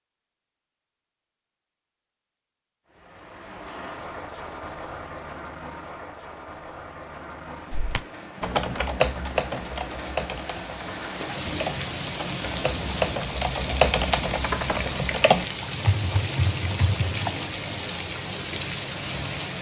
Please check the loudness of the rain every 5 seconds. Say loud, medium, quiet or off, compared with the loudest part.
medium, medium, loud, loud.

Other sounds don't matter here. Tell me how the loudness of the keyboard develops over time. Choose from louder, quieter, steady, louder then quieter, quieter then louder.
quieter then louder.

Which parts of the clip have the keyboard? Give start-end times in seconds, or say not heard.
7.7-17.5.